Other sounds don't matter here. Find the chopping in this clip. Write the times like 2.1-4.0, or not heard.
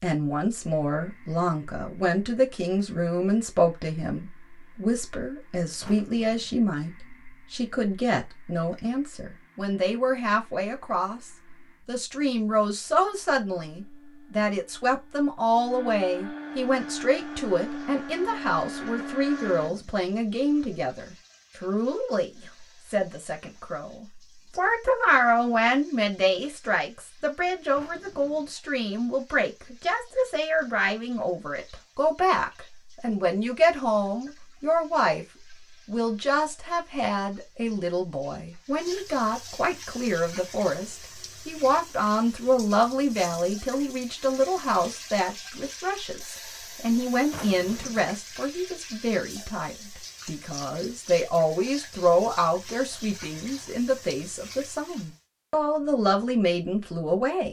not heard.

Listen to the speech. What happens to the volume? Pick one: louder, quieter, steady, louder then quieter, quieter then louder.
steady.